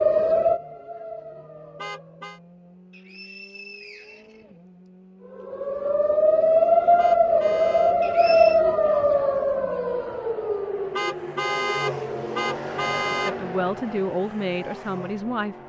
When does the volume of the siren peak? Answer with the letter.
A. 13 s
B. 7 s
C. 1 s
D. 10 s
B.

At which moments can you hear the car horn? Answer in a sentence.
The car horn can be heard from 1.8 to 2.4 s, from 7.0 to 8.0 s and from 10.9 to 13.3 s.